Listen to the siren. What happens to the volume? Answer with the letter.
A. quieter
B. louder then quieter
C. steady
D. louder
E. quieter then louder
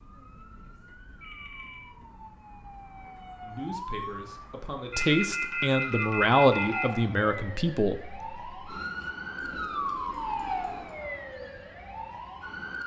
D.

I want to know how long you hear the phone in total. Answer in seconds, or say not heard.
4 s.